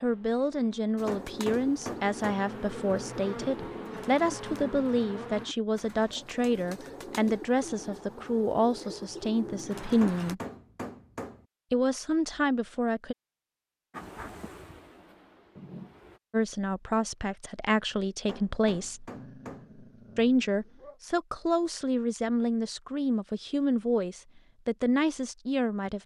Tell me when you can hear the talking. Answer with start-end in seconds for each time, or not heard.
0.0-10.4, 11.7-13.2, 16.3-19.1, 20.1-26.0.